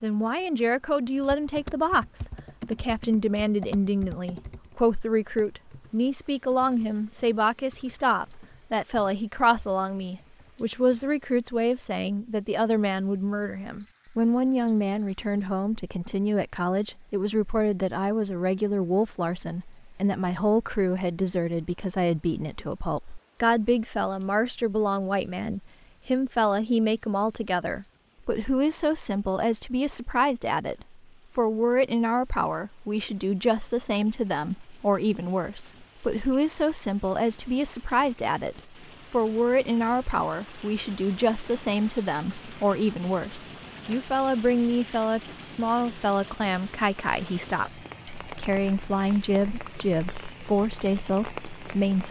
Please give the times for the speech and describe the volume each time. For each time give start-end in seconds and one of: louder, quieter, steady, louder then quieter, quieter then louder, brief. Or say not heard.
0.0-52.0 steady.